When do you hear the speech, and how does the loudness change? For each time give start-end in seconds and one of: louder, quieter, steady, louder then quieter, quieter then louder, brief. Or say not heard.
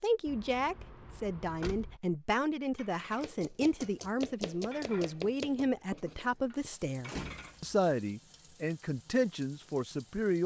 0.0-10.4 steady.